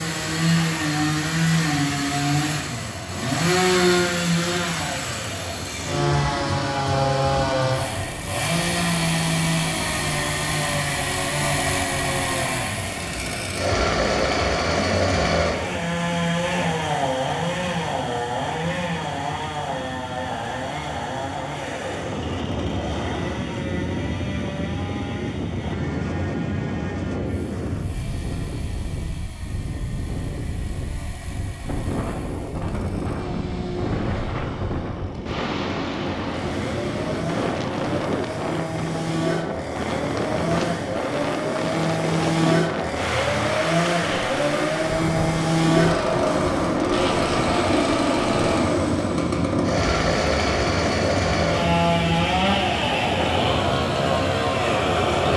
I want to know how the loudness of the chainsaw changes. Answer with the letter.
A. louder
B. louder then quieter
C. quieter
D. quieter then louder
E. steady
D.